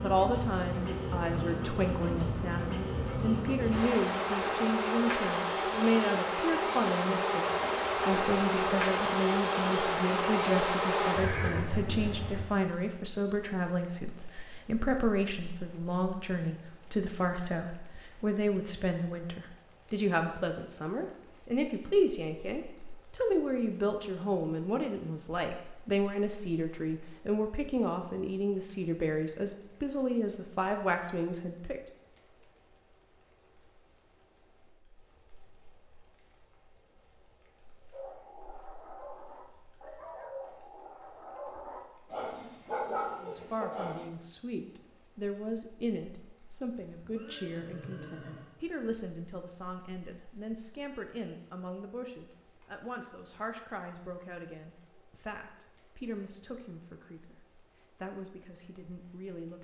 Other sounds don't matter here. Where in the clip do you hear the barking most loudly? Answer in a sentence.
The loudest moment of the barking is at 43 seconds.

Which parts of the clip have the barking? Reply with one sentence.
The barking can be heard from 37.9 to 44.0 s.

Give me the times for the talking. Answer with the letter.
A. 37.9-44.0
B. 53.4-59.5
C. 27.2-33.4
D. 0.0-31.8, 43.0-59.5
D.